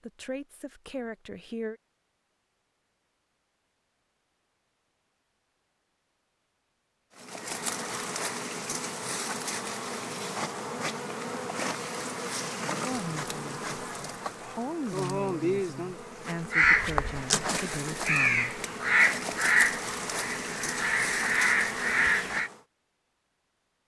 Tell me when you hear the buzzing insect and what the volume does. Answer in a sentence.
The buzzing insect can be heard from 7.2 to 22.6 s, at a steady volume.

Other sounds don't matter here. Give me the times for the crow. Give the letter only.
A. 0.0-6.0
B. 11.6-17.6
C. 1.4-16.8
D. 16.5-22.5
D.